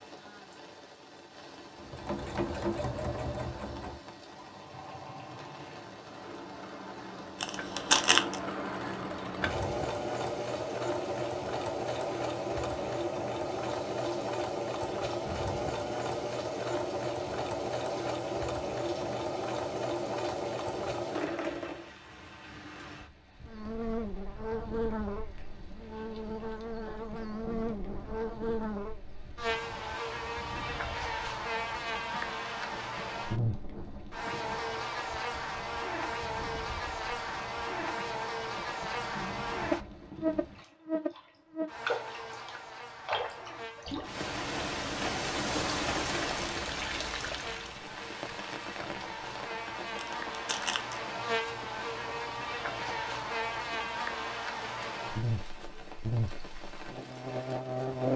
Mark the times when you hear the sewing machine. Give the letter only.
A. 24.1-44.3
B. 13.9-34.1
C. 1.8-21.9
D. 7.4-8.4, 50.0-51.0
C.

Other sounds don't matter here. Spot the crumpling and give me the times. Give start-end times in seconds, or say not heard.
7.4-8.4, 50.0-51.0.